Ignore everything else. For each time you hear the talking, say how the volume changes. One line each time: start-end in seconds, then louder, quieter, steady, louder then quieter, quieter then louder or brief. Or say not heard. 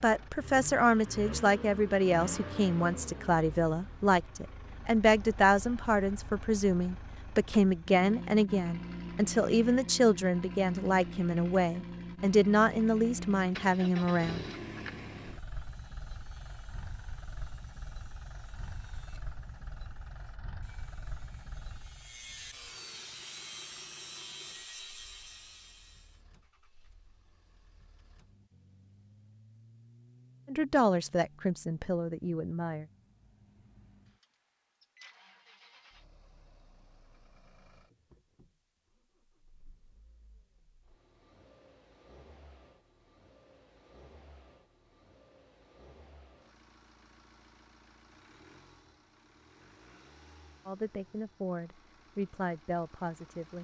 0.0-14.4 steady
30.4-32.9 brief
50.6-53.5 brief.